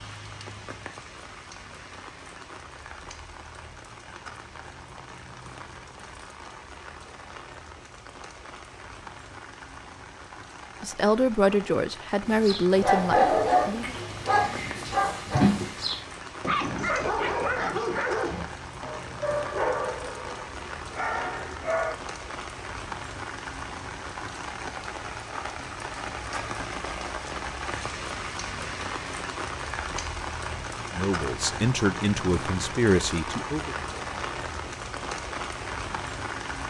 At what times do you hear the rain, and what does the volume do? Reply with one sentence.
The rain can be heard from 0.0 to 36.6 s, getting louder.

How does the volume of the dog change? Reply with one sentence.
The loudness of the dog goes down.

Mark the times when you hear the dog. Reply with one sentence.
The dog can be heard from 12.2 to 21.9 s.